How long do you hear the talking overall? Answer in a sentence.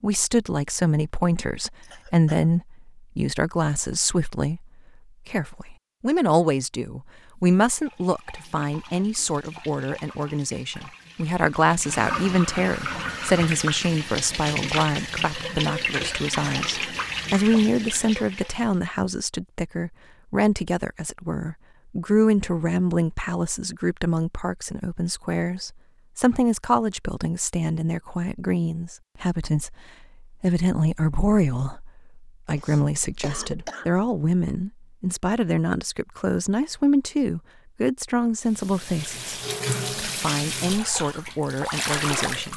The talking can be heard for 41 seconds in total.